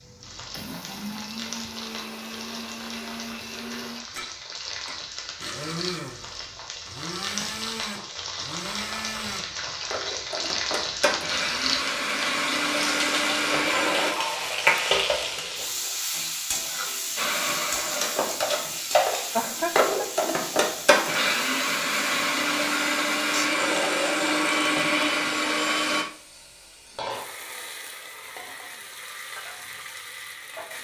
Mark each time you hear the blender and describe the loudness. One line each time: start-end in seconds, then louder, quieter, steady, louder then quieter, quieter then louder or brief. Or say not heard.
0.0-14.2 louder
17.1-26.1 steady.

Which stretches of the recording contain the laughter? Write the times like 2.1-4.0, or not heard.
19.3-20.1.